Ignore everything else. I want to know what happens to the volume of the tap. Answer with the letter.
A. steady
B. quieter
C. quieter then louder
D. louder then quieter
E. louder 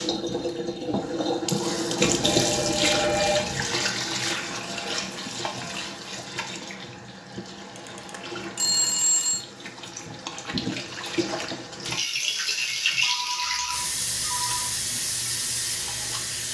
C.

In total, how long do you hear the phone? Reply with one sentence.
You can hear the phone for 5 seconds altogether.